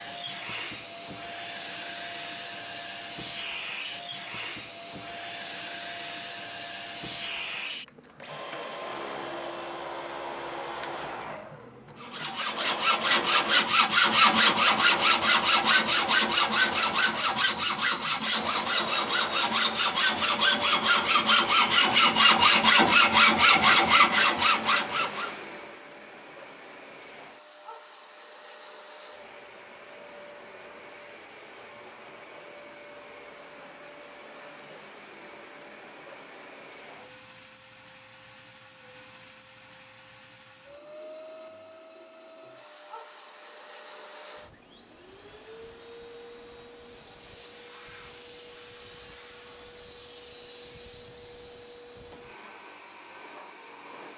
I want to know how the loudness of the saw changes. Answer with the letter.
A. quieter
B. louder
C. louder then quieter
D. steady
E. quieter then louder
E.